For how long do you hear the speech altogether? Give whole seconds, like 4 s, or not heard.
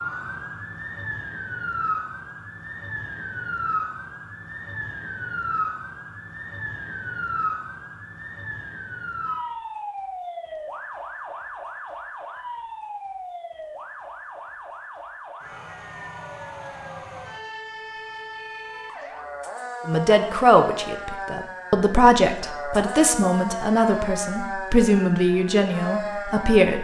7 s.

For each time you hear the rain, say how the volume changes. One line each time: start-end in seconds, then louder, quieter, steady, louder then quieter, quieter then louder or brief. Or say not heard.
not heard.